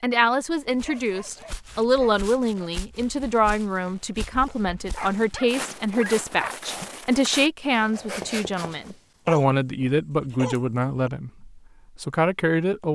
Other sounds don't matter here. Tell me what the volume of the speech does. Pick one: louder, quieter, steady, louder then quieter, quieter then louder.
steady.